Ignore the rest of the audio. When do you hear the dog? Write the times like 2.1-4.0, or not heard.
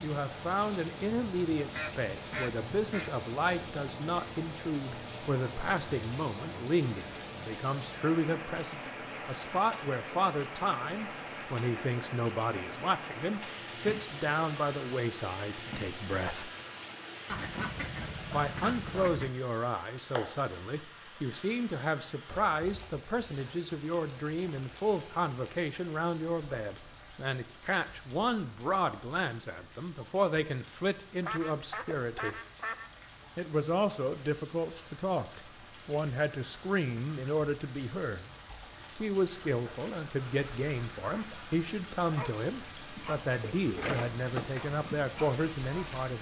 42.1-46.1.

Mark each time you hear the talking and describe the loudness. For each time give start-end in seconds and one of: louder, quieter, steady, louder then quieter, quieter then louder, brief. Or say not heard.
0.0-16.5 steady
18.3-32.4 steady
33.4-38.2 steady
38.9-46.1 steady.